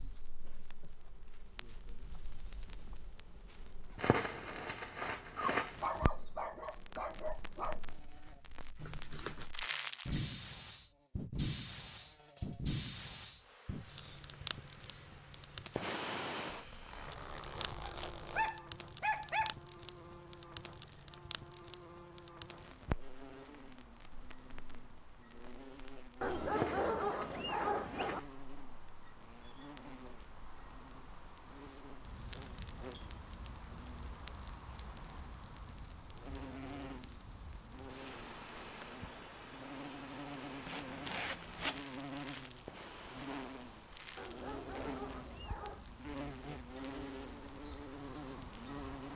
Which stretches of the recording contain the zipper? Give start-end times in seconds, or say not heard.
8.8-9.5, 16.5-18.5, 40.6-41.9.